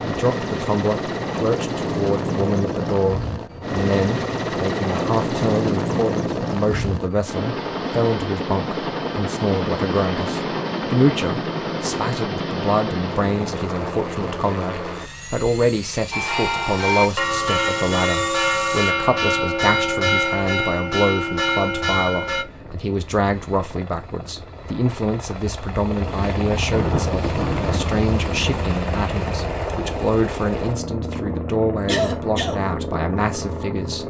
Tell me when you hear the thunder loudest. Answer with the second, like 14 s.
27 s.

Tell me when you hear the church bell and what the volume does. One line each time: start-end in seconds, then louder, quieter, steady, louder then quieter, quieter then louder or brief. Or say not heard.
16.1-22.4 steady.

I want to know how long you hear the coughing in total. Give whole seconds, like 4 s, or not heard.
2 s.